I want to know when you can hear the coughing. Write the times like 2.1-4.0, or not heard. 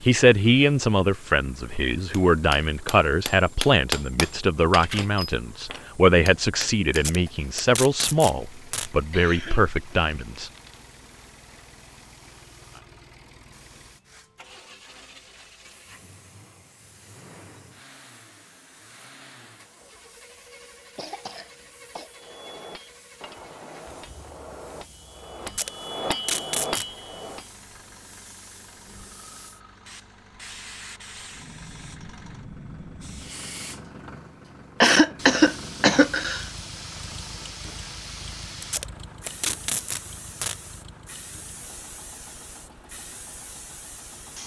9.1-10.8, 20.9-22.1, 34.8-36.5.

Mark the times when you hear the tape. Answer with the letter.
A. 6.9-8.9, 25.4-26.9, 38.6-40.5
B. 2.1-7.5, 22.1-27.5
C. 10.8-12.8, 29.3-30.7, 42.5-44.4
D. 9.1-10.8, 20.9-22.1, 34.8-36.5
A.